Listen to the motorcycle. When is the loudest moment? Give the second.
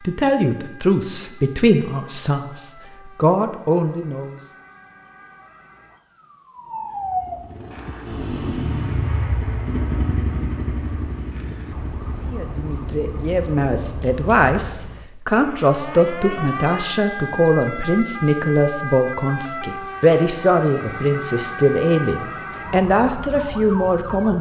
9 s.